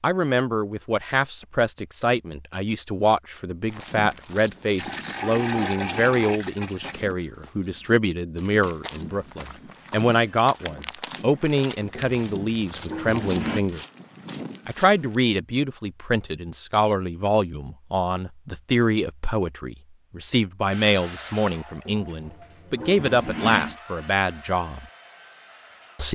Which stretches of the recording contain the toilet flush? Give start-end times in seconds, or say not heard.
4.8-7.1, 11.9-13.6, 22.1-23.8.